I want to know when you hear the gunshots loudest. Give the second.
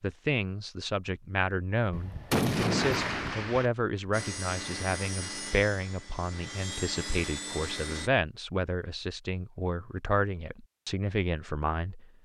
2 s.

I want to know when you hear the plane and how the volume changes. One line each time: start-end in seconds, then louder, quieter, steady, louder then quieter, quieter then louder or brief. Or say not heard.
4.1-8.1 quieter then louder.